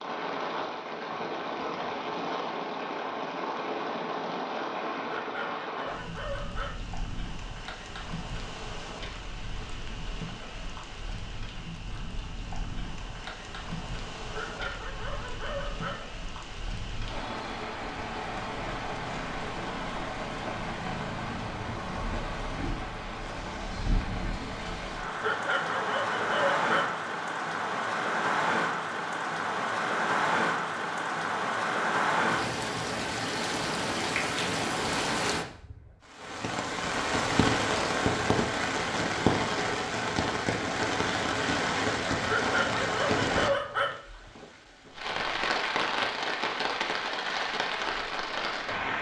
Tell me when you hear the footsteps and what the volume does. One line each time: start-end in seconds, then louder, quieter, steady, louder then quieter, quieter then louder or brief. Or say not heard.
not heard.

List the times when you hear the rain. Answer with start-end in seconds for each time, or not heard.
0.0-48.9.